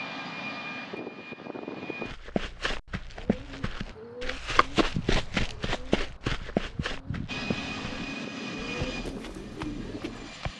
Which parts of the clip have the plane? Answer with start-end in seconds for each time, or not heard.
0.0-2.1, 7.2-10.5.